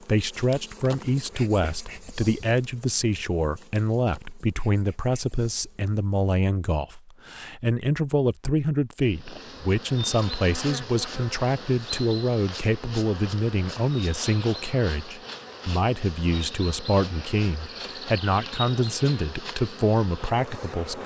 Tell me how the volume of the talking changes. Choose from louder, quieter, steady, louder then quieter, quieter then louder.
steady.